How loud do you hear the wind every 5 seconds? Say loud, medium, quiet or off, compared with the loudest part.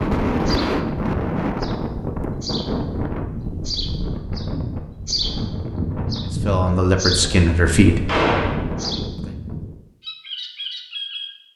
loud, medium, off.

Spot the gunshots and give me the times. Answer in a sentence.
You can hear the gunshots from 8.1 to 8.6 s.